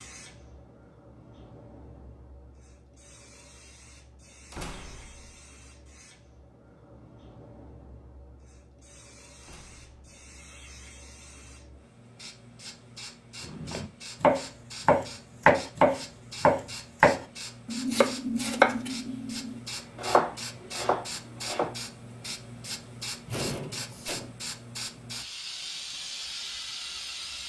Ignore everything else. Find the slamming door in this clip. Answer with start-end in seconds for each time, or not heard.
4.5-5.3, 9.4-10.0, 23.2-24.4.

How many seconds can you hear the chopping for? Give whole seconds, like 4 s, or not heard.
8 s.